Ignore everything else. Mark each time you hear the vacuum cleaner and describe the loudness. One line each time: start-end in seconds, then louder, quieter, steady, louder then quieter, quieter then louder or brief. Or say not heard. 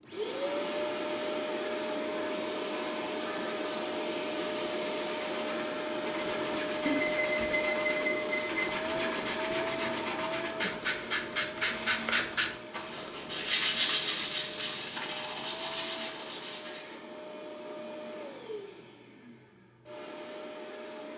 0.0-21.1 quieter.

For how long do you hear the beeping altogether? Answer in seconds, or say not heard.
2 s.